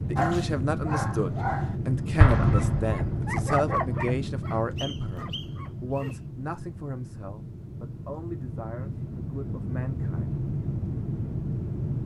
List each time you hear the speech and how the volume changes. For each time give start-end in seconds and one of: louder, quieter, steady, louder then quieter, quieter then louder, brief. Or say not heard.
0.1-10.4 quieter.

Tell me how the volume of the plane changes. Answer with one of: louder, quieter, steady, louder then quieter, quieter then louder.
quieter then louder.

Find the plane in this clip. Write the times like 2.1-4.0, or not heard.
0.0-12.0.